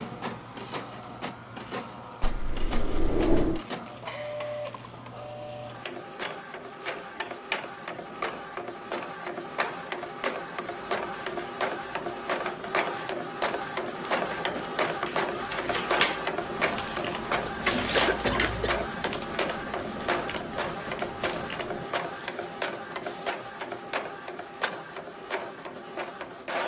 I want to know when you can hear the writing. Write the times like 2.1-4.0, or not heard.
not heard.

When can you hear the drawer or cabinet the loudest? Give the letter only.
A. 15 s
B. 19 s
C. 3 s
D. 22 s
C.